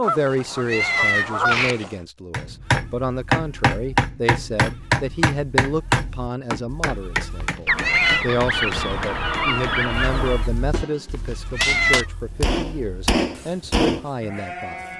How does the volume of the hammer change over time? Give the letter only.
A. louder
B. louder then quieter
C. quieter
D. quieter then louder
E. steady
D.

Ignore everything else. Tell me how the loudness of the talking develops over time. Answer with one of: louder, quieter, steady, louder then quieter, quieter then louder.
steady.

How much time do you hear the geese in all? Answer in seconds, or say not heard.
5 s.